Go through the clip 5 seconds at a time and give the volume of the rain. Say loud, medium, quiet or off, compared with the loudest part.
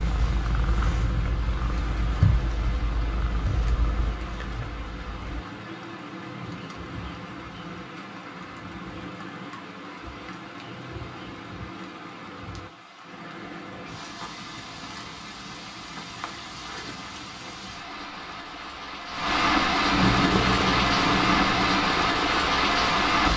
quiet, quiet, quiet, medium, loud.